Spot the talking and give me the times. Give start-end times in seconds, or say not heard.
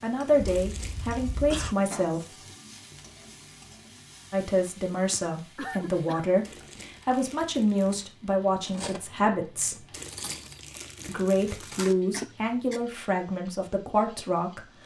0.0-2.2, 4.3-9.8, 11.1-14.8.